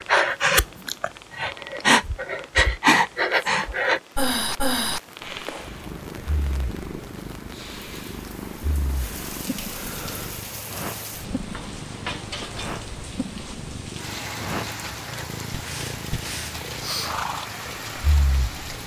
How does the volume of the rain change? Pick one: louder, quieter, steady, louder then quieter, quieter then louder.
louder.